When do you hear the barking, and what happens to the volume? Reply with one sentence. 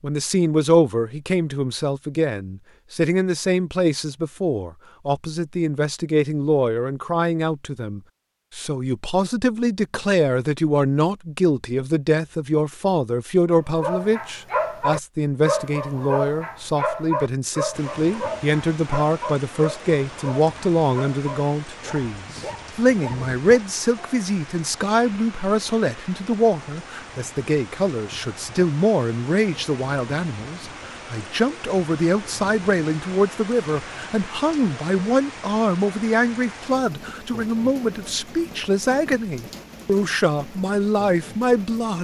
The barking can be heard from 13.7 to 24.1 s, getting quieter.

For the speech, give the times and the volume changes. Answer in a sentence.
You can hear the speech from 0.0 to 41.9 s, at a steady volume.